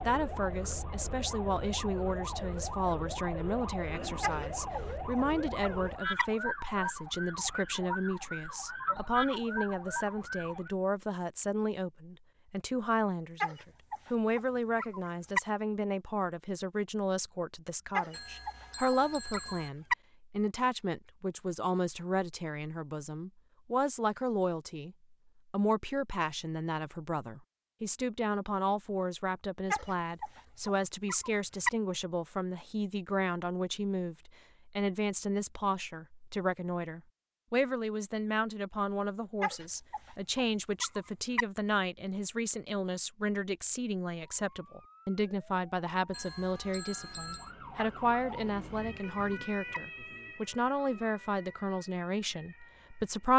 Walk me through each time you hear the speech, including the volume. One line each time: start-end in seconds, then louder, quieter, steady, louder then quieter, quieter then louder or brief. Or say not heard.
0.0-53.3 steady.